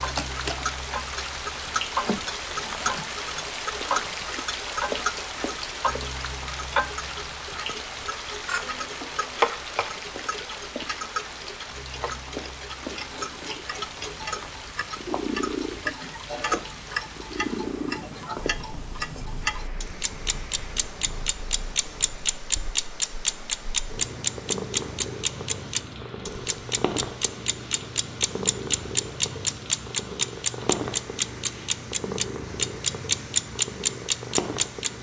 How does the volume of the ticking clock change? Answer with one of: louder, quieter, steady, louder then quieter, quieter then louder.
louder.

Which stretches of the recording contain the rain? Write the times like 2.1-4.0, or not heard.
0.0-34.9.